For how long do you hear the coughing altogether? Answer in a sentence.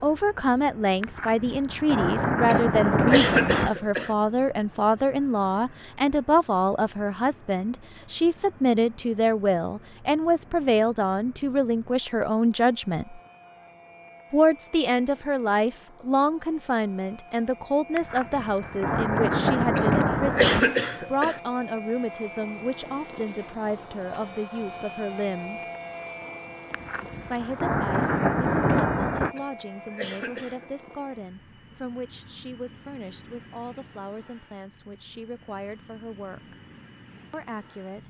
You can hear the coughing for 5 seconds altogether.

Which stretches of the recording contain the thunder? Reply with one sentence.
The thunder can be heard from 1.0 to 3.7 s, from 17.9 to 20.6 s and from 26.7 to 29.4 s.